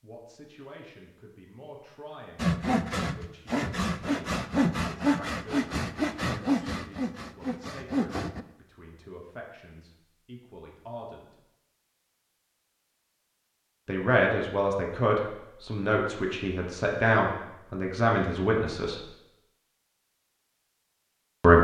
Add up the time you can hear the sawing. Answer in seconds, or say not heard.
6 s.